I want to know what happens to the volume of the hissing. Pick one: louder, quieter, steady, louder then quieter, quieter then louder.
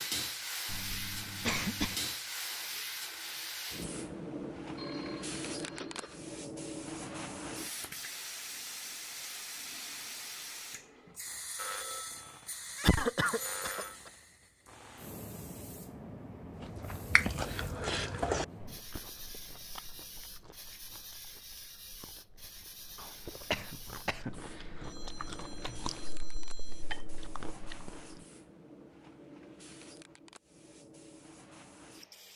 quieter.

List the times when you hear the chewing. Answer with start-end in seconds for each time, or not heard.
16.6-28.2.